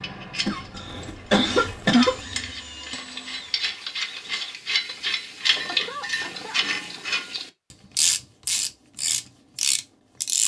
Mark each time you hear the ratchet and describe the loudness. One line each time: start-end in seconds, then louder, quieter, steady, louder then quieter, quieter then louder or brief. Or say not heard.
0.0-10.4 louder.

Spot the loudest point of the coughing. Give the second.
2 s.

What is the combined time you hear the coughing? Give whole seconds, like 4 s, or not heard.
3 s.